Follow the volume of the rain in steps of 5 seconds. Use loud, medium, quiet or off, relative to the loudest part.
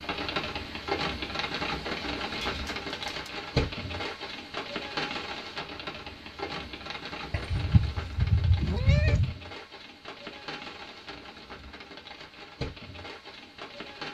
loud, medium, medium.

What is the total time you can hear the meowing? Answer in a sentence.
The meowing can be heard for 3 seconds in total.